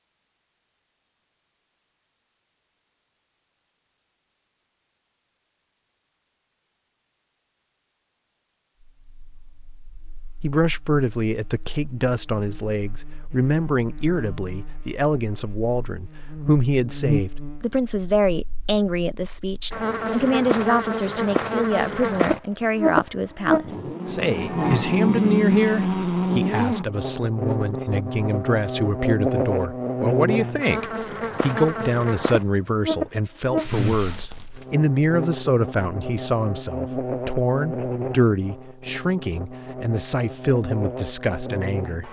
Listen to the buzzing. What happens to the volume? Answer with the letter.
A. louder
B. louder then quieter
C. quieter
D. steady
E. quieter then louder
B.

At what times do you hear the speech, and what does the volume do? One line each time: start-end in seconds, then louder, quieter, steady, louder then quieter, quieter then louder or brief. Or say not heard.
10.4-42.0 steady.